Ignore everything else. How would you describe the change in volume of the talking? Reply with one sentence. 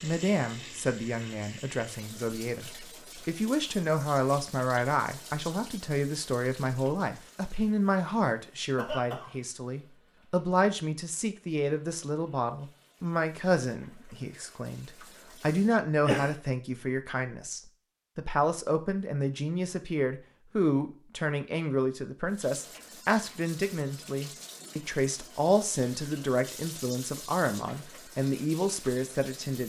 The volume of the talking stays about the same.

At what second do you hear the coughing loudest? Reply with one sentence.
The loudest moment of the coughing is at 16 seconds.